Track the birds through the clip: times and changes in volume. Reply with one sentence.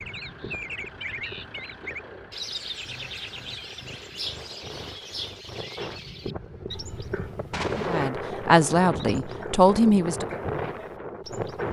You can hear the birds from 0.0 to 11.6 s, getting quieter.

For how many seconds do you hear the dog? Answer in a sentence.
The dog can't be heard in this clip.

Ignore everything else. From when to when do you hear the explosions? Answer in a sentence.
You can hear the explosions from 7.5 to 8.1 s.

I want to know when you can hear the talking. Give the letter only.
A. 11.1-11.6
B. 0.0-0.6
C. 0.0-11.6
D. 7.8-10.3
D.